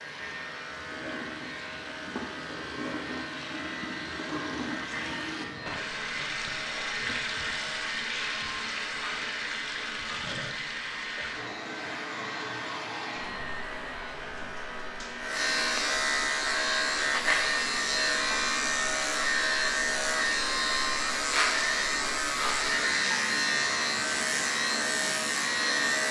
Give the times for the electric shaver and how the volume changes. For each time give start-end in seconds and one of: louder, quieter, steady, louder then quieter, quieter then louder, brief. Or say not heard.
0.0-26.0 louder.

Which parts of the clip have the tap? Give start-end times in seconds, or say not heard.
0.0-26.0.